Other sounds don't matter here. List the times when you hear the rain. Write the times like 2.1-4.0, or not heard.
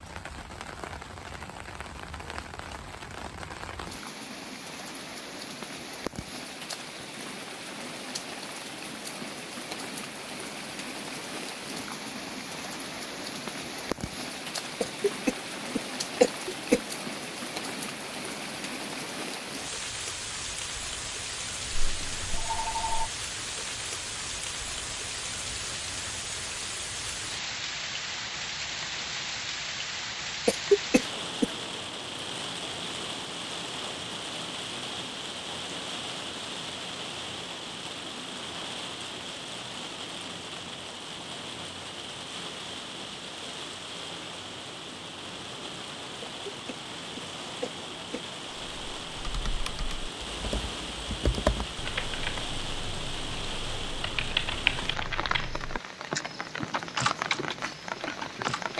0.0-58.7.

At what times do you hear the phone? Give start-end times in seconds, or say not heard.
21.8-23.1.